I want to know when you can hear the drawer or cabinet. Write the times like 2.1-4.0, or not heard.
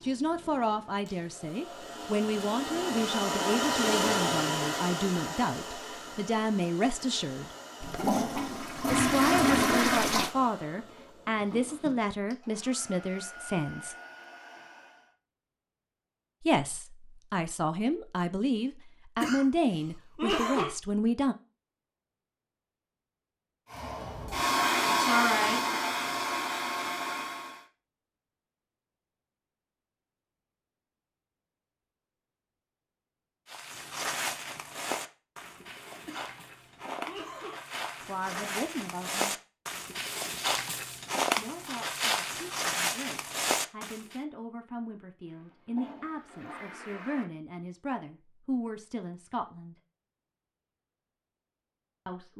not heard.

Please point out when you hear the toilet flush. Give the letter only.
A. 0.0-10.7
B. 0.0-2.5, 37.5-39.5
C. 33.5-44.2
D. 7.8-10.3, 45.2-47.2
D.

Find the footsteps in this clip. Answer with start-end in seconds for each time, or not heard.
33.5-44.2.